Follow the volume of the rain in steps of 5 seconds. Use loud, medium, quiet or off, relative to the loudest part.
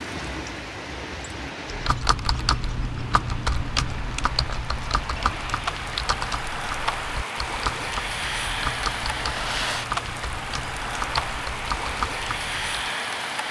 medium, loud, loud.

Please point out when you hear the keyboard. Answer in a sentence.
The keyboard can be heard from 1.7 to 12.9 s.